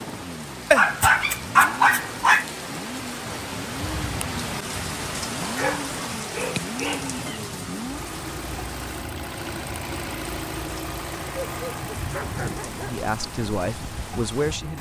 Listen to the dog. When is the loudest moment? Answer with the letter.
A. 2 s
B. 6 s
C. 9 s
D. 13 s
A.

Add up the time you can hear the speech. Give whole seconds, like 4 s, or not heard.
2 s.